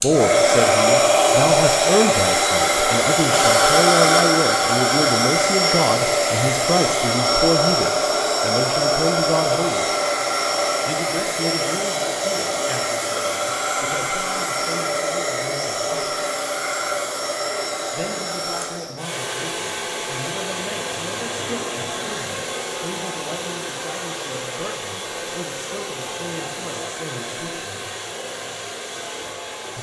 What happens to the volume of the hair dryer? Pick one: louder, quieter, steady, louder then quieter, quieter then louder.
quieter.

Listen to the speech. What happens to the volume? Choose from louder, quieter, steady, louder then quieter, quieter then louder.
quieter.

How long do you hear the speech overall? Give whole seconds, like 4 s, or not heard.
25 s.